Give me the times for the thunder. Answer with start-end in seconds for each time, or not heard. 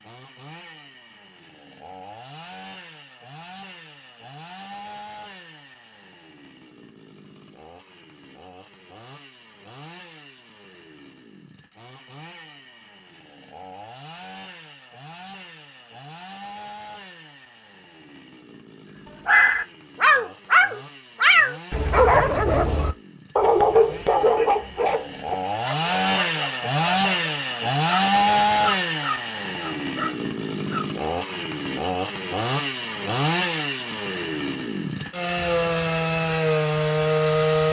not heard.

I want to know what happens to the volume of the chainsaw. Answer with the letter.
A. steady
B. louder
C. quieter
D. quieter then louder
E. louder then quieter
B.